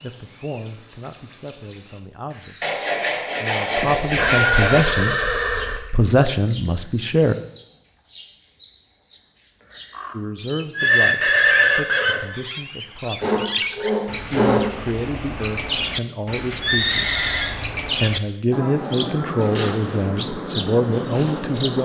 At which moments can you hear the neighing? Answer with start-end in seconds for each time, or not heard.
3.8-5.8, 10.8-12.2, 16.6-17.6.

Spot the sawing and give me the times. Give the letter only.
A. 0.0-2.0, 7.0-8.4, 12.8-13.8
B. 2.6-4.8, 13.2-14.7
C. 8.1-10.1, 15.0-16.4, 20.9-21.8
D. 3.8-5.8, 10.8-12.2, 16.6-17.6
B.